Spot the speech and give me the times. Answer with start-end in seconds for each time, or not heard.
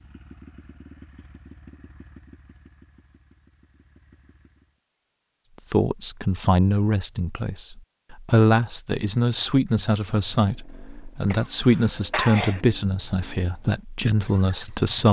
5.7-15.0.